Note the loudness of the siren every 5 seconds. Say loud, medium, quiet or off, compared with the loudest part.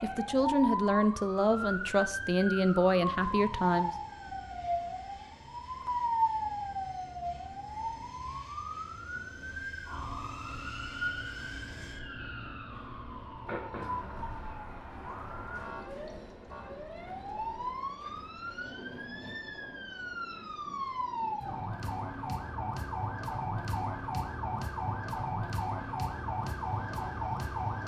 loud, loud, medium, medium, loud, loud.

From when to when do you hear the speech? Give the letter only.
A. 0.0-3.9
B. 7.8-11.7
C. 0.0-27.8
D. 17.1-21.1
A.